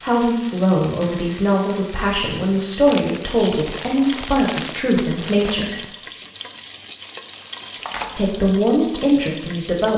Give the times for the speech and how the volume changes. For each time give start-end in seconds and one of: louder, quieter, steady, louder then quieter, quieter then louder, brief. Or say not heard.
0.0-5.8 steady
8.2-9.9 brief.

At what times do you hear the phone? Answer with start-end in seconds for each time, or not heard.
7.8-8.2.